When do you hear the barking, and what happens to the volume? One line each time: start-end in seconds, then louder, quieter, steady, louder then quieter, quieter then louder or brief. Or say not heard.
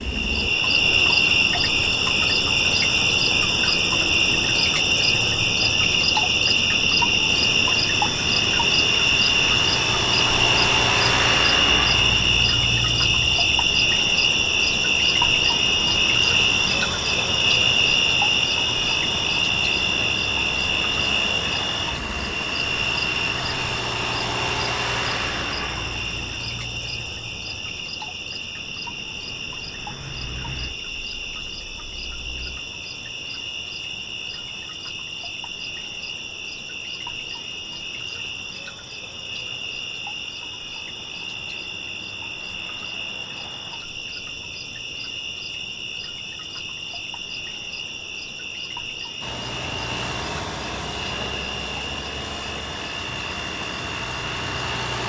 not heard.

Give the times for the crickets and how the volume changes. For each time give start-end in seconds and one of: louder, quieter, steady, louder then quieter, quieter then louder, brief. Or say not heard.
0.0-55.0 quieter.